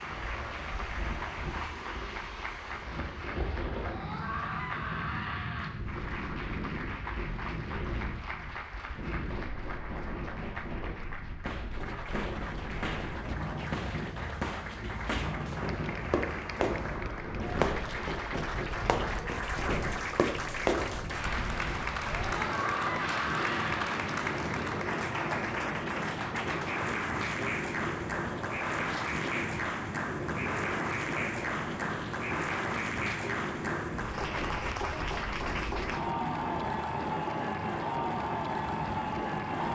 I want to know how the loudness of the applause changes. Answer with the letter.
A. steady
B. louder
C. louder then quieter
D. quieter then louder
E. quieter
B.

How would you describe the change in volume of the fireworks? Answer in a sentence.
The loudness of the fireworks goes up.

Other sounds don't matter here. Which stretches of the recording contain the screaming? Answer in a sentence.
The screaming can be heard from 3.8 to 5.7 s and from 22.3 to 24.0 s.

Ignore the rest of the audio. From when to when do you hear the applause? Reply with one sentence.
The applause can be heard from 0.0 to 39.6 s.